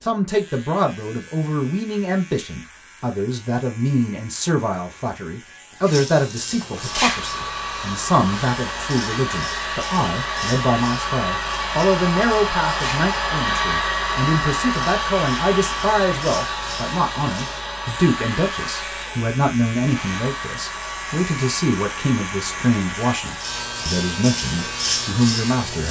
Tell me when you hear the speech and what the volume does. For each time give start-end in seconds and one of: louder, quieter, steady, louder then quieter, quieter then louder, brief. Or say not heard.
0.0-25.8 steady.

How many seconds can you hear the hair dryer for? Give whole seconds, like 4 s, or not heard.
19 s.